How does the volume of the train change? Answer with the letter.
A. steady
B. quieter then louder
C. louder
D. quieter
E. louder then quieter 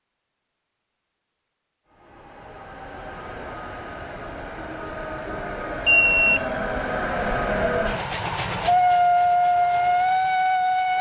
C.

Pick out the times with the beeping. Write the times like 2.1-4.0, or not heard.
5.8-6.5.